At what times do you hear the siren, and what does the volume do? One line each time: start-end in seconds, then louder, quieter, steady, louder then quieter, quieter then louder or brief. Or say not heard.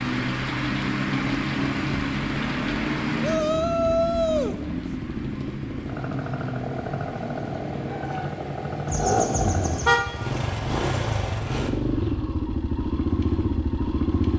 0.0-8.3 quieter.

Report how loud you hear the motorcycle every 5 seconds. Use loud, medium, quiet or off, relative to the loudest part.
medium, loud, loud.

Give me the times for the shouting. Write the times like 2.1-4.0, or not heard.
3.2-4.6.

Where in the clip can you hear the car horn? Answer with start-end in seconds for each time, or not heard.
8.8-10.0.